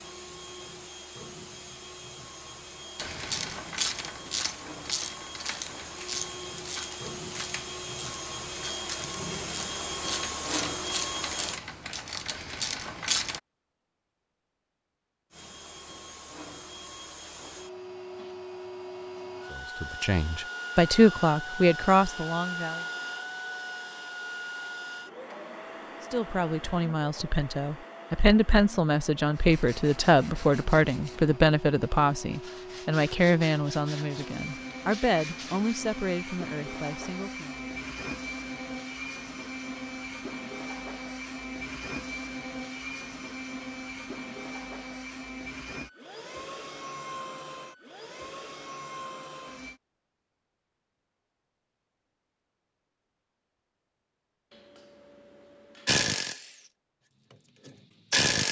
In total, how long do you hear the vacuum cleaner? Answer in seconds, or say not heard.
46 s.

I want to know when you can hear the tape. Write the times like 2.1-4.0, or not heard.
not heard.